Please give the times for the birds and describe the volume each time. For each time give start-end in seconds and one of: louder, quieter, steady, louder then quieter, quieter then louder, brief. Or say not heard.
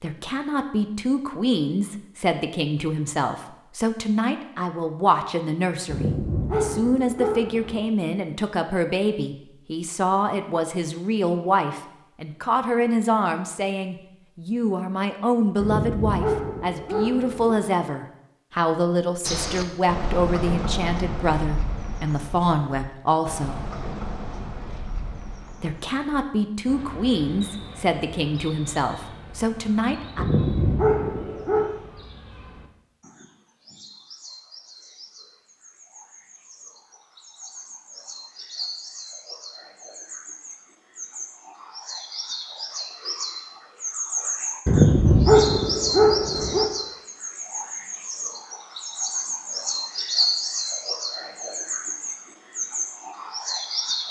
19.2-54.0 quieter then louder.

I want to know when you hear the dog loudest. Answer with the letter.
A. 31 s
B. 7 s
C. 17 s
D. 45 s
D.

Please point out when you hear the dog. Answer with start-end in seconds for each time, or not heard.
5.8-7.8, 15.6-17.6, 30.1-31.7, 44.6-46.7.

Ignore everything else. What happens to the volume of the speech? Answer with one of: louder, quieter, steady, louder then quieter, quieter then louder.
steady.